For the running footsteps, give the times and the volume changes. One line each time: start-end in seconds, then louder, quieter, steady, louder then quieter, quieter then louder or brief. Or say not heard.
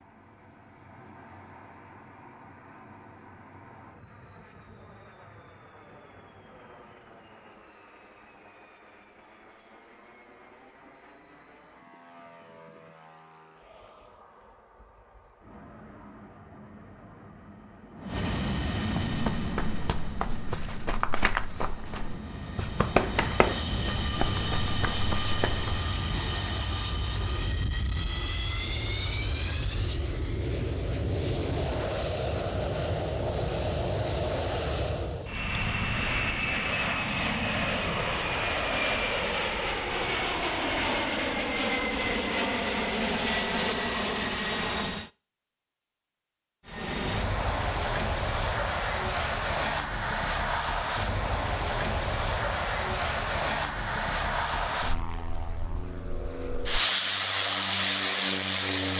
19.1-25.8 louder then quieter.